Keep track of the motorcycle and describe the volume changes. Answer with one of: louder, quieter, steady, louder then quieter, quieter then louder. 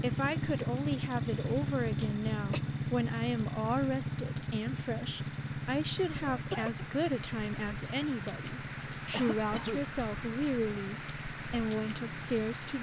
quieter.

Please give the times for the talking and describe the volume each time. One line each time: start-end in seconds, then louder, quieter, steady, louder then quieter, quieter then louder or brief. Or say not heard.
0.0-12.7 steady.